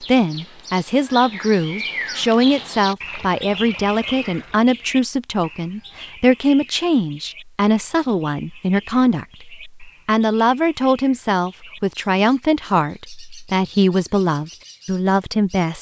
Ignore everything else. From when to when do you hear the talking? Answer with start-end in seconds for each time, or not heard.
0.0-15.7.